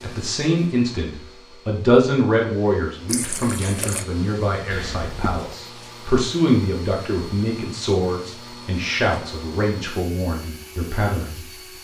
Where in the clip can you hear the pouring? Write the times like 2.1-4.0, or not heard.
3.0-4.0.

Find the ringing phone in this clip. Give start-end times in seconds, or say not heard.
4.7-5.5.